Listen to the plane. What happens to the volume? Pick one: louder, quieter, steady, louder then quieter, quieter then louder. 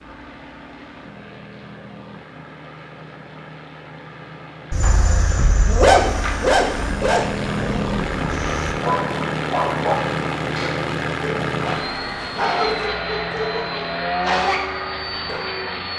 louder.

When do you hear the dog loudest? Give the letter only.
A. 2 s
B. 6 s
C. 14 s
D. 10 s
B.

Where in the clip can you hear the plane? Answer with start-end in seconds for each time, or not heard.
0.0-15.9.